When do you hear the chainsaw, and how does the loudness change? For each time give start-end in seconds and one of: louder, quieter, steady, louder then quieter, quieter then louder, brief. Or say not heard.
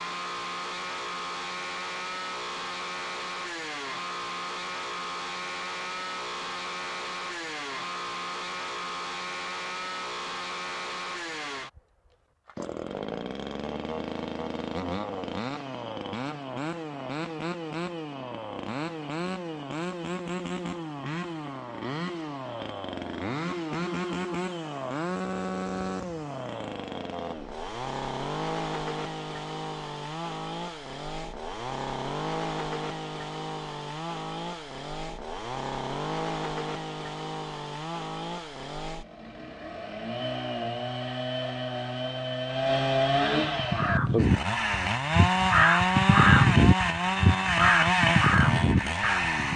0.0-49.5 louder.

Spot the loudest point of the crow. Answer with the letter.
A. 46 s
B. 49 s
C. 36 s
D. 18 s
A.